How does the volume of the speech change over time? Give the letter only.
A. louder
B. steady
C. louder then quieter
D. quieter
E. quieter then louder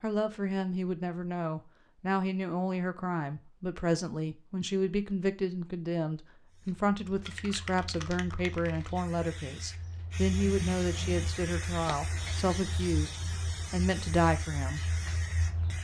B.